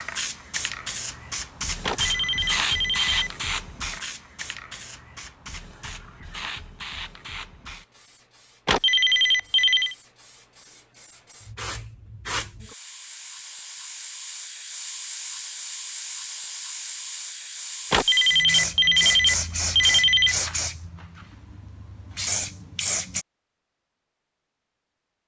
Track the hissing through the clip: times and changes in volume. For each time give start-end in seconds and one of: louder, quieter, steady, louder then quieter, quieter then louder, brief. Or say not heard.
0.0-23.2 quieter then louder.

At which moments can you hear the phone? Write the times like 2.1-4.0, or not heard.
1.8-3.3, 8.7-9.9, 17.9-20.4.